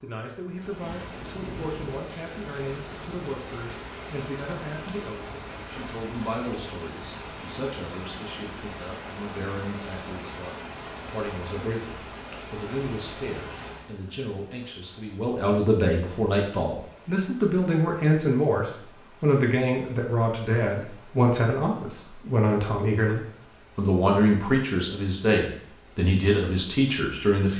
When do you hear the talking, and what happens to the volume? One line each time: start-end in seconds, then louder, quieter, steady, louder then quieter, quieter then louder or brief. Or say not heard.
0.0-27.5 louder.